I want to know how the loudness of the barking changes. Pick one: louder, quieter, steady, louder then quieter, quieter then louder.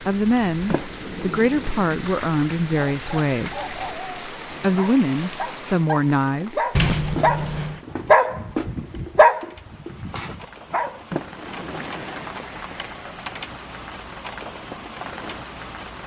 louder.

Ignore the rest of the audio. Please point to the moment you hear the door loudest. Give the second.
7 s.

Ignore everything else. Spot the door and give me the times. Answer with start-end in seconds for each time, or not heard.
0.7-2.0, 6.8-7.8, 11.1-12.4.